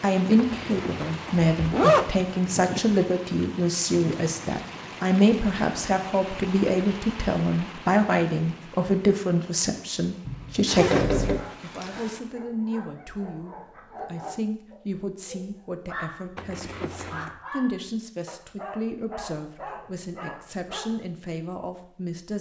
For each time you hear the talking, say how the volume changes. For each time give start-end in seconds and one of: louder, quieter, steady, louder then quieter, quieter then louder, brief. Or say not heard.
0.0-22.3 quieter.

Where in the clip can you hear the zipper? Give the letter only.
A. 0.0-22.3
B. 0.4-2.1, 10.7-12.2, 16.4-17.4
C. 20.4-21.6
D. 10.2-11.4
B.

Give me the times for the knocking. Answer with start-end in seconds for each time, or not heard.
10.2-11.4.